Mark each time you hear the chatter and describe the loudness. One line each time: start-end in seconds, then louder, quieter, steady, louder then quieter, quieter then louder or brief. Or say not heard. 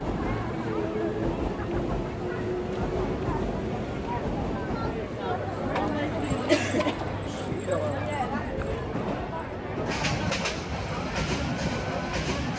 0.1-12.5 louder then quieter.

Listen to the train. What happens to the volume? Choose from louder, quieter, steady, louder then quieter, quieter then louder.
quieter then louder.